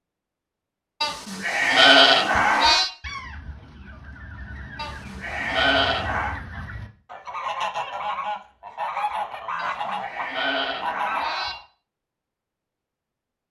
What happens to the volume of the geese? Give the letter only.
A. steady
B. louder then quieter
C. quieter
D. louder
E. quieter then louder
D.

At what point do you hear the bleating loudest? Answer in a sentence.
The loudest moment of the bleating is at 2 seconds.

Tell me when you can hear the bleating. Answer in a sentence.
You can hear the bleating from 1.0 to 2.9 s, from 4.8 to 6.4 s and from 9.6 to 11.6 s.